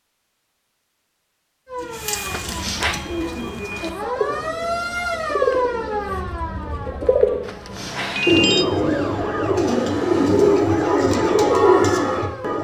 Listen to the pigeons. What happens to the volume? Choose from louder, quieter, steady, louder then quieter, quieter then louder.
louder.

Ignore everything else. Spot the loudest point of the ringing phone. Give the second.
8 s.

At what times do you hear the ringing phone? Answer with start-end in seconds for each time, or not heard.
2.2-3.0, 7.4-8.7.